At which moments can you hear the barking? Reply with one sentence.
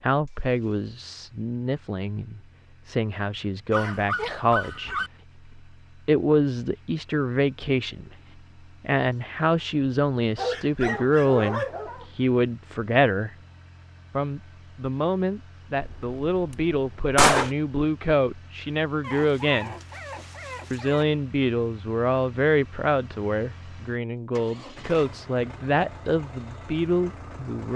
You can hear the barking from 3.7 to 5.1 s, from 10.3 to 12.1 s and from 19.0 to 21.1 s.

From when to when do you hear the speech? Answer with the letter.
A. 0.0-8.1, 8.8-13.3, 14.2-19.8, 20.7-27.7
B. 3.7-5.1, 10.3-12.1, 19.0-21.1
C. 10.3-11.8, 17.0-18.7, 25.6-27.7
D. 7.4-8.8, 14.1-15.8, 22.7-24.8
A.